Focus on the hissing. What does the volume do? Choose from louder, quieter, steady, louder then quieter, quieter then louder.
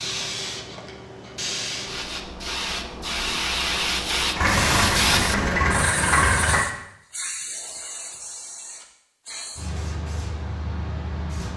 louder then quieter.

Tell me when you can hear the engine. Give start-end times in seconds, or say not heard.
4.3-6.7.